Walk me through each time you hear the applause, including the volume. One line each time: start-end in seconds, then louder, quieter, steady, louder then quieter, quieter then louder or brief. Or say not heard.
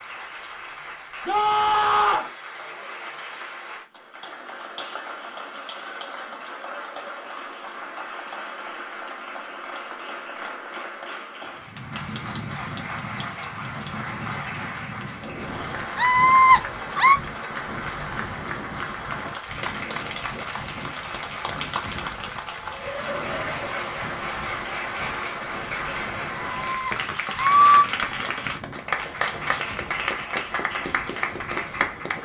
0.0-32.1 louder.